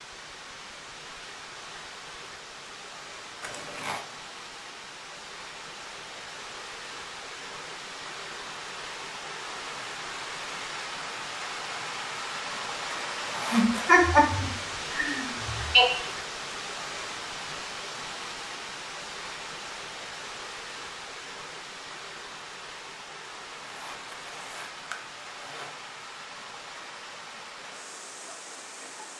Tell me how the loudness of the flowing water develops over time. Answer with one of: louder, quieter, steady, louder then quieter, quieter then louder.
louder then quieter.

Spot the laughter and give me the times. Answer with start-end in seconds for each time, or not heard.
13.5-15.8.